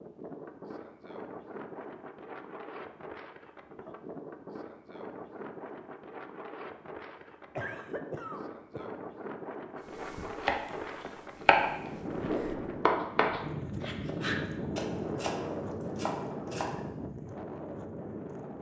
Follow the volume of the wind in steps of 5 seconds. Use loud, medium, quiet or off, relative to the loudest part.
medium, medium, loud, loud.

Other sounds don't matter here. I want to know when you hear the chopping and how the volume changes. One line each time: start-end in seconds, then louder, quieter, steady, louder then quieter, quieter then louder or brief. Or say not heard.
10.2-16.9 quieter.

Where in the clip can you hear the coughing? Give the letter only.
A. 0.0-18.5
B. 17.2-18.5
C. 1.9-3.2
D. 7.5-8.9
D.